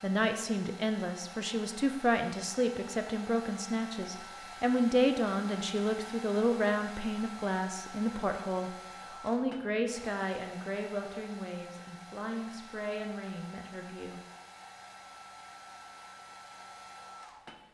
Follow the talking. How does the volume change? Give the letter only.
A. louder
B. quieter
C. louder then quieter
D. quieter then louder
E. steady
B.